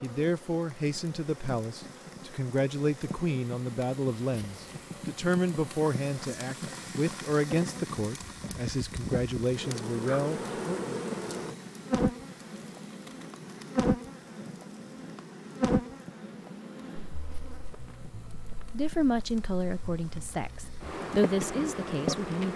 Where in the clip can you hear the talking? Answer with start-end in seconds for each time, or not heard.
0.0-11.0, 18.7-22.5.